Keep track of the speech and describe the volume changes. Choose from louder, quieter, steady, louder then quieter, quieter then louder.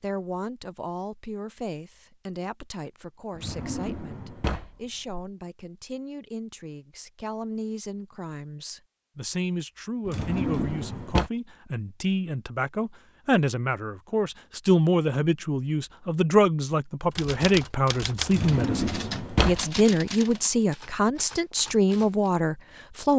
louder.